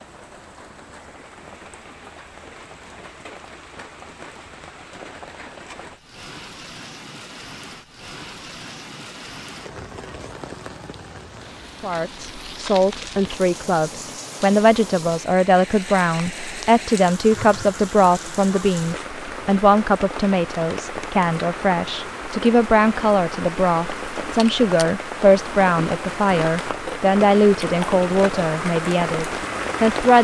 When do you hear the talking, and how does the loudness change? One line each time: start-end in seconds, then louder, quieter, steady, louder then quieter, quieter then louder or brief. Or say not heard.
11.8-30.1 steady.